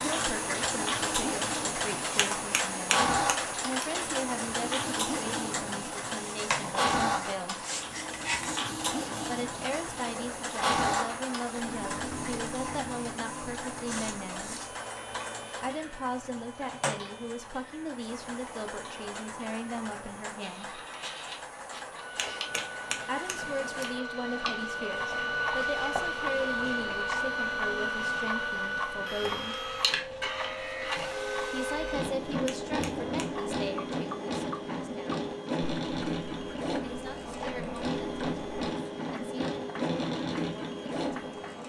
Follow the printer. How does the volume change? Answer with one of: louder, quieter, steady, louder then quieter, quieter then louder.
quieter then louder.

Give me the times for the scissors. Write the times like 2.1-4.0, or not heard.
2.1-3.9, 22.1-23.9, 32.5-33.2.